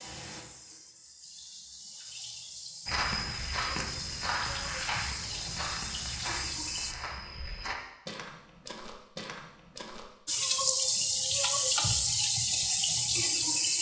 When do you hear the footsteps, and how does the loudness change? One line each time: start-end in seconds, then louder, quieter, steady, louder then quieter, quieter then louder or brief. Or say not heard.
2.9-10.1 quieter.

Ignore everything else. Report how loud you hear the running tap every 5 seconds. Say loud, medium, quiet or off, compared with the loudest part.
quiet, medium, loud.